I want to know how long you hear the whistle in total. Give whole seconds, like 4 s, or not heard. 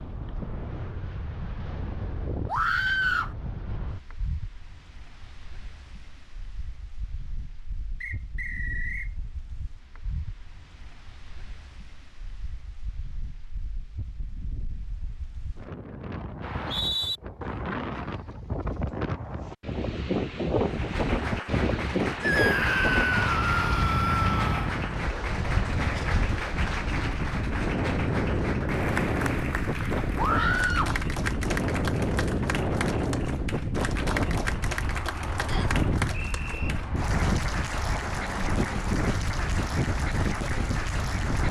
3 s.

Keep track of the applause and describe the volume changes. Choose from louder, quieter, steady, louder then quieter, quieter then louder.
steady.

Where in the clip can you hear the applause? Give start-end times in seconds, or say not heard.
20.6-41.4.